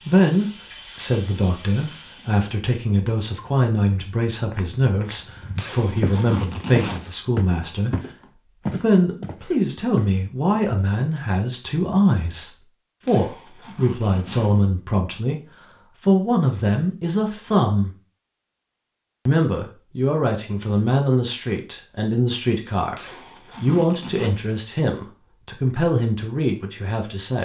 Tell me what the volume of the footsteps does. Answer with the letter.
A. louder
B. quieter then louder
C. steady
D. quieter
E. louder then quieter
E.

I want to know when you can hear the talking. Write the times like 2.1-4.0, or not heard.
0.0-8.0, 8.7-17.9, 19.2-27.3.